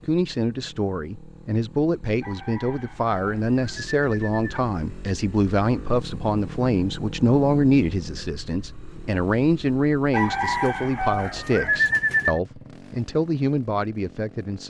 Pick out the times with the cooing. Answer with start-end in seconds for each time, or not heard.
2.2-4.5, 10.1-12.4.